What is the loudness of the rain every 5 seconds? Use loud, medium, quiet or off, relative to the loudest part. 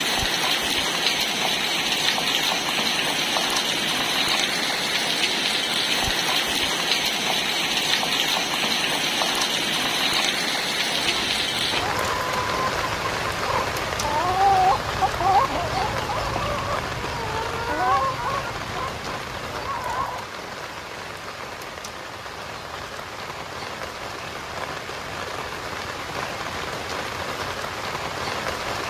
loud, loud, loud, medium, medium, medium.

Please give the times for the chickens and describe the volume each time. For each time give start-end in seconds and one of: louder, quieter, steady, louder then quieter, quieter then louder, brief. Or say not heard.
10.9-20.2 louder then quieter.